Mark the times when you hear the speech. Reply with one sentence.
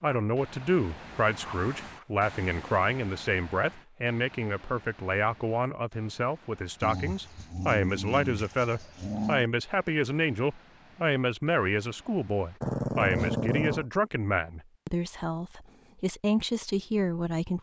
You can hear the speech from 0.0 to 17.5 s.